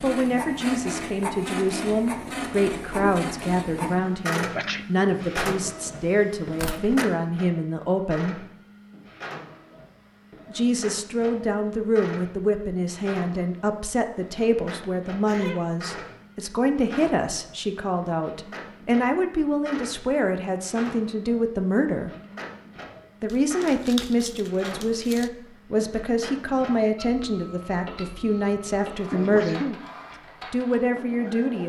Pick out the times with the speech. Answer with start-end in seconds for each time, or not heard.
0.0-8.4, 10.5-22.1, 23.2-29.6, 30.5-31.6.